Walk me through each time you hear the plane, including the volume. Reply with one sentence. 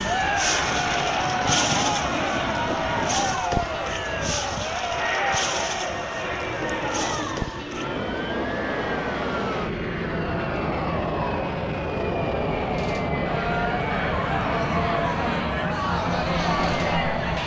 The plane can be heard from 0.0 to 17.4 s, at a steady volume.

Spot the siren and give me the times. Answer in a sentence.
You can hear the siren from 0.0 to 17.4 s.